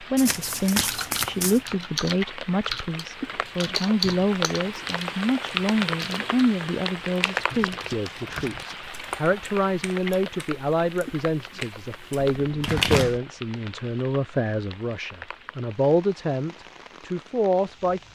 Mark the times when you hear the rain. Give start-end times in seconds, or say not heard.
0.0-18.1.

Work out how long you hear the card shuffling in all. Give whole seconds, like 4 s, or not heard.
4 s.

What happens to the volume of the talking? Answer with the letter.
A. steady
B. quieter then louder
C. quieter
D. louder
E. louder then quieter
A.